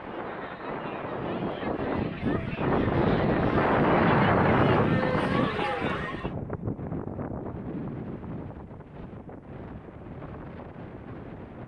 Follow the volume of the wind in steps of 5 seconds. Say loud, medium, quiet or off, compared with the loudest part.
loud, medium, quiet.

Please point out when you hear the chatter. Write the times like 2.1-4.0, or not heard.
0.0-6.3.